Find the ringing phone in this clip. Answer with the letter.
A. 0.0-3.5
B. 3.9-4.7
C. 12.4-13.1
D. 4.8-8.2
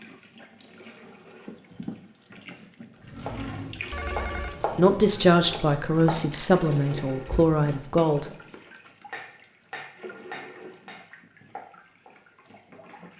B.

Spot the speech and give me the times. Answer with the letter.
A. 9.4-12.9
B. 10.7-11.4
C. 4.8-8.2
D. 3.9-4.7
C.